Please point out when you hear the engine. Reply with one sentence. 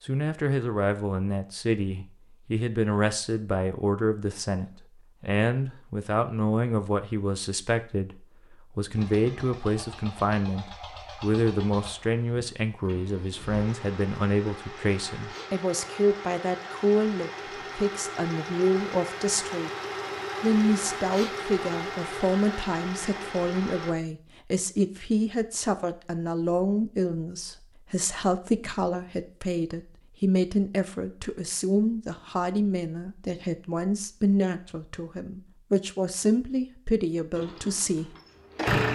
The engine can be heard from 8.9 to 23.9 s and from 37.4 to 38.8 s.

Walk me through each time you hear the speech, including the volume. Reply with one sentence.
You can hear the speech from 0.0 to 19.7 s, at a steady volume; and from 20.4 to 38.1 s, at a steady volume.